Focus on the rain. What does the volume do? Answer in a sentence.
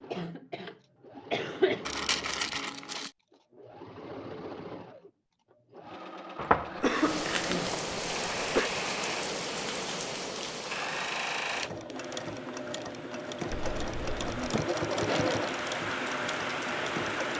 The volume of the rain goes down, then up.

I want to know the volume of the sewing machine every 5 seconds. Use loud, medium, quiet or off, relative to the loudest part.
medium, medium, loud, loud.